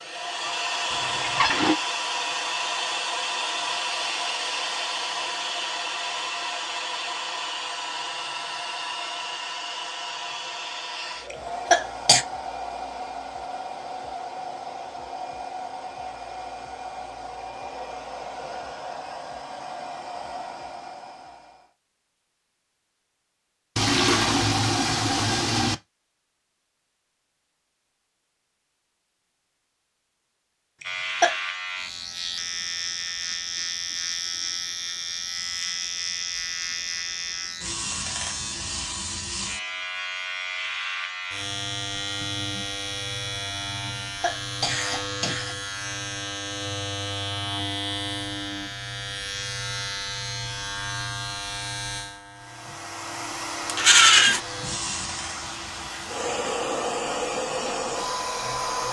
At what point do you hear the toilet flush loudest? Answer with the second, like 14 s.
54 s.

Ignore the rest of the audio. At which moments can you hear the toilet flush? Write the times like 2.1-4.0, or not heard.
0.9-1.8, 23.8-25.8, 53.6-54.4.